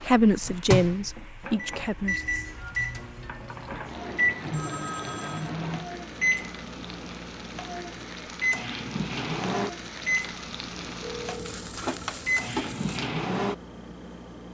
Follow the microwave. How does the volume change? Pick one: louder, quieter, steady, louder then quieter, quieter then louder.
steady.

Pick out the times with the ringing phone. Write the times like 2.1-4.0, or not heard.
4.5-5.5, 10.9-11.6.